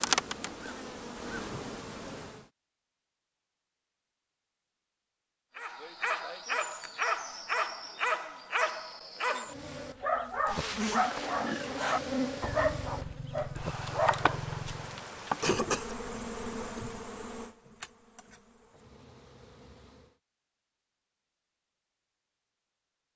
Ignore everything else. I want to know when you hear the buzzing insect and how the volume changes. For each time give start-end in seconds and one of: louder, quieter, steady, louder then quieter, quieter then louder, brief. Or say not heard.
0.0-2.5 brief
9.4-20.2 quieter.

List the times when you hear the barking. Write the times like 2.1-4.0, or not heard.
5.5-15.1.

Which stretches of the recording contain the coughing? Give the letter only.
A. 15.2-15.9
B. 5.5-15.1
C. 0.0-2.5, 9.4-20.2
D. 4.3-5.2
A.